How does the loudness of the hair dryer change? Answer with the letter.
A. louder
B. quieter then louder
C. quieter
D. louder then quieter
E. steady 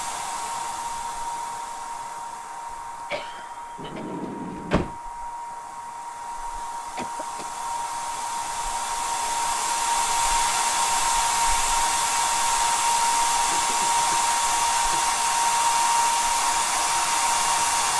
A.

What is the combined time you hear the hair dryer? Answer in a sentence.
The hair dryer can be heard for 18 seconds in total.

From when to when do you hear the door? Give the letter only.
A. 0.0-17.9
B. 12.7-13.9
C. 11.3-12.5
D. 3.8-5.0
D.